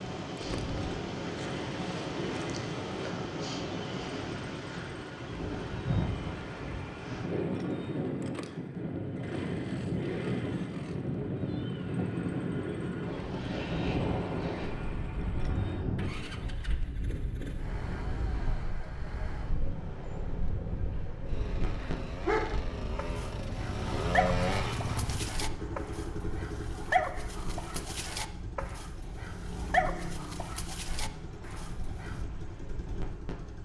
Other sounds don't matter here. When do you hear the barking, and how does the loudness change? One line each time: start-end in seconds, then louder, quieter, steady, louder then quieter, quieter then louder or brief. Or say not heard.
21.8-32.2 quieter.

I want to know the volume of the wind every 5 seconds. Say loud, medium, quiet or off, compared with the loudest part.
loud, loud, loud, medium, medium, quiet, quiet.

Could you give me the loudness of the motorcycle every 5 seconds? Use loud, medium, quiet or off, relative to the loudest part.
medium, medium, medium, medium, loud, medium, medium.